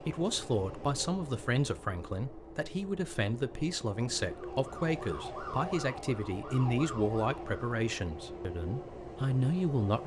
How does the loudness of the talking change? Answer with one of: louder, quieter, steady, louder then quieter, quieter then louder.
steady.